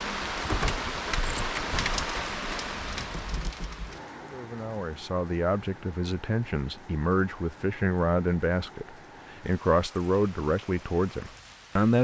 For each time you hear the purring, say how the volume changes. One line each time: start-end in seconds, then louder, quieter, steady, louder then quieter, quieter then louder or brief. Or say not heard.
not heard.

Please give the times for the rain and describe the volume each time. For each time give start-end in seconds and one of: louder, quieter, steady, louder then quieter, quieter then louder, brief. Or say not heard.
0.0-11.9 quieter.